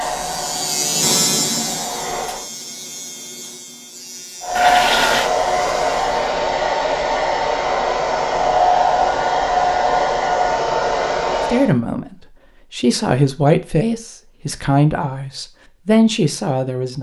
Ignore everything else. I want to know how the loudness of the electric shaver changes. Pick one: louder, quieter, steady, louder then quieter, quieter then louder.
quieter.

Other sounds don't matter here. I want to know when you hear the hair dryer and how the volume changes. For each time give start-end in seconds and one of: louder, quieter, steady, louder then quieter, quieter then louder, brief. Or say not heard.
0.0-2.5 brief
4.4-11.7 steady.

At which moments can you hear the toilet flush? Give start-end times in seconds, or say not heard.
4.5-5.3.